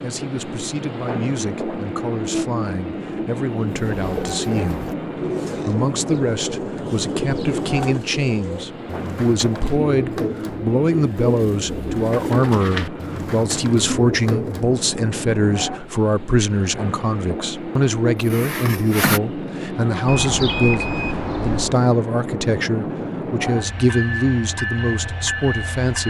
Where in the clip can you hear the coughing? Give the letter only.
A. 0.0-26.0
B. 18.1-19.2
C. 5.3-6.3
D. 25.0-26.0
B.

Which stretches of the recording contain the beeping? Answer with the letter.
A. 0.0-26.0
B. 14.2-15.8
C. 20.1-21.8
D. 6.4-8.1
C.